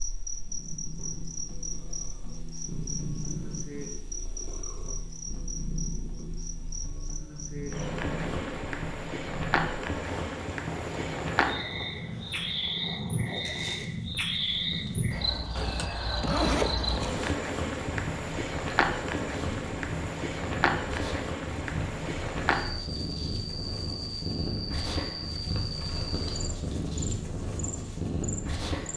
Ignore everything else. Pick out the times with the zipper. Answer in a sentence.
The zipper can be heard from 15.6 to 17.2 s.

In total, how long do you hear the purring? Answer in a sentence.
You can hear the purring for 29 seconds altogether.